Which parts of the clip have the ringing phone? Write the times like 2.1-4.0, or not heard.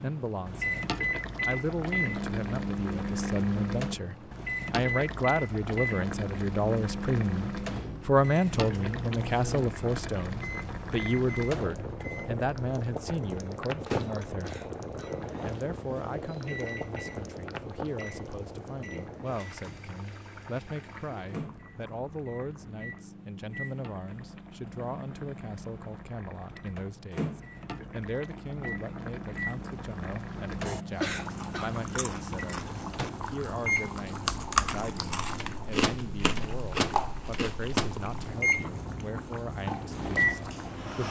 not heard.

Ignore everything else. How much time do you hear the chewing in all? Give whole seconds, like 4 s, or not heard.
7 s.